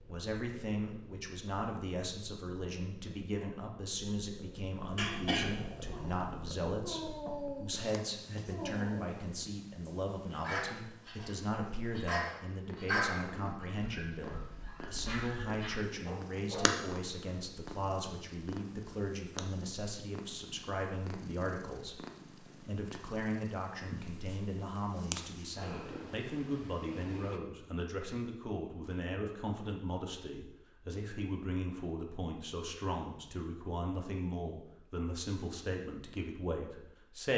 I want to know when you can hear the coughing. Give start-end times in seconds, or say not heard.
5.0-6.3.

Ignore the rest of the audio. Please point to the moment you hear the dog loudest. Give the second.
13 s.